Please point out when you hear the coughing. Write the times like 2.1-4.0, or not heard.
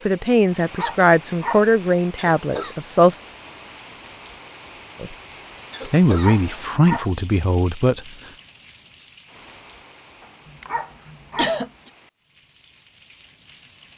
2.1-2.8, 5.7-6.7, 10.4-11.9.